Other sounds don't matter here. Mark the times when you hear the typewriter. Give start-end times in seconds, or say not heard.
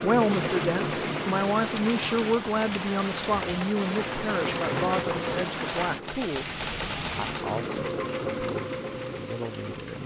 1.7-7.6.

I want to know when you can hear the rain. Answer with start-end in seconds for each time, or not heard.
0.0-10.0.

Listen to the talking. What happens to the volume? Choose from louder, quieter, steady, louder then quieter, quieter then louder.
quieter.